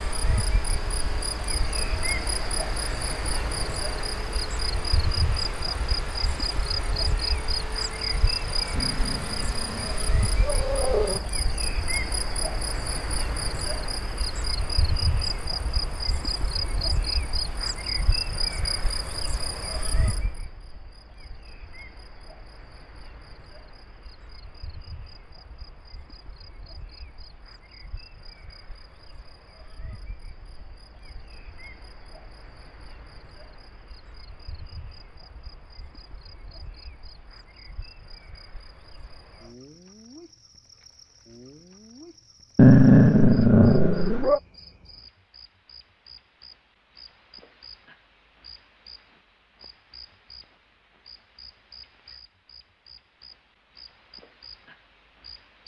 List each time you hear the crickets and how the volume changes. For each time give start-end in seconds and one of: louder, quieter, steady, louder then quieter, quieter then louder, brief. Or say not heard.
0.0-55.6 quieter.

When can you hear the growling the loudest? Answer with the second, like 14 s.
43 s.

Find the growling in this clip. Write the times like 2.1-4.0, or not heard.
8.8-11.3, 42.5-44.4.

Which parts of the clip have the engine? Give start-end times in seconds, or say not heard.
0.0-11.2.